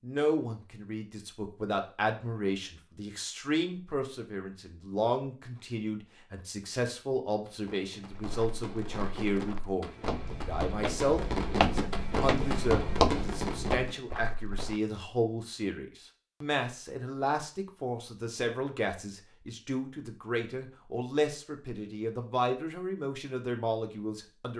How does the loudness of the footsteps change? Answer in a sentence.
The volume of the footsteps goes up, then down.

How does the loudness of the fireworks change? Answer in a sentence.
The volume of the fireworks goes up.